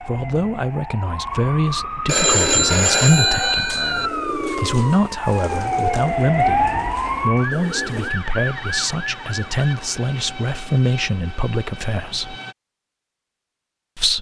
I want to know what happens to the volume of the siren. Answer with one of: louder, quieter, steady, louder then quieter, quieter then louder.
louder then quieter.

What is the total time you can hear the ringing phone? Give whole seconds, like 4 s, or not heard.
2 s.